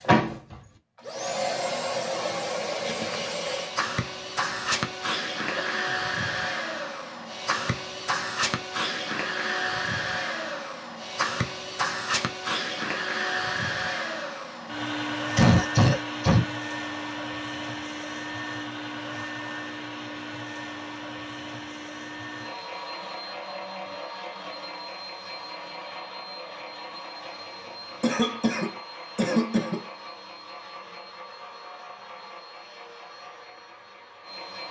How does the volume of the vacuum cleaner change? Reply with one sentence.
The volume of the vacuum cleaner goes down.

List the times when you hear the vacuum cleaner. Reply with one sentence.
You can hear the vacuum cleaner from 0.0 to 34.6 s.